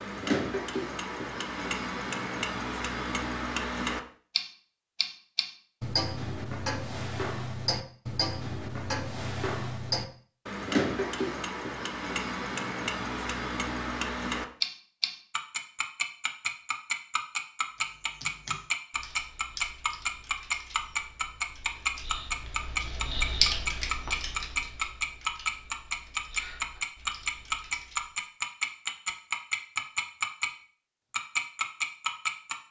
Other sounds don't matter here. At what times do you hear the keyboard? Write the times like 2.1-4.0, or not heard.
17.8-28.2.